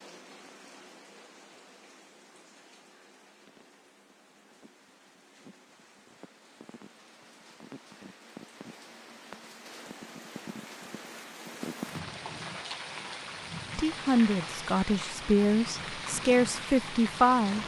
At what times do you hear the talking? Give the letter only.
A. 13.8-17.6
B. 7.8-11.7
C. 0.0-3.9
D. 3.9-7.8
A.